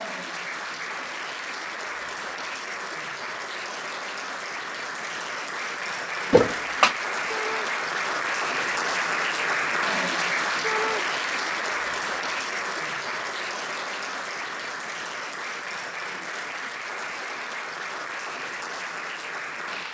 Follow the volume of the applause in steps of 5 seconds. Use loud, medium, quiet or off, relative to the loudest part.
medium, loud, loud, medium.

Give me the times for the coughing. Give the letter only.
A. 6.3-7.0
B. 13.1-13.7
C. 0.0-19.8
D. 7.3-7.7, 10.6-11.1
A.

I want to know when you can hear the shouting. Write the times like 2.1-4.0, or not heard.
7.3-7.7, 10.6-11.1.